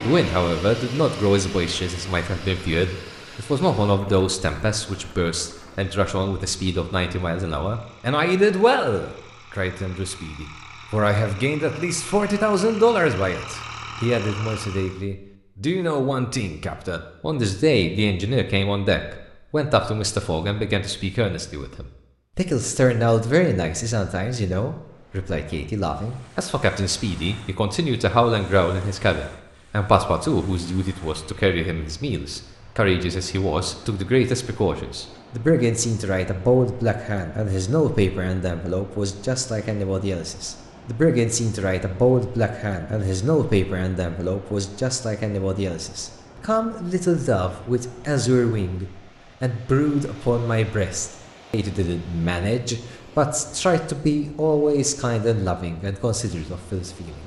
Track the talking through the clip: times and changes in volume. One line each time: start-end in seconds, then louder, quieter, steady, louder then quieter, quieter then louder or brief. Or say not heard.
0.0-57.2 steady.